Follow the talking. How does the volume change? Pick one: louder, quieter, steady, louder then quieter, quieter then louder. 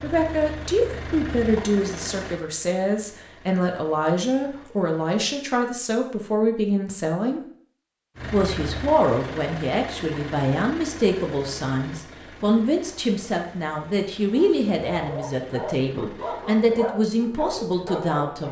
steady.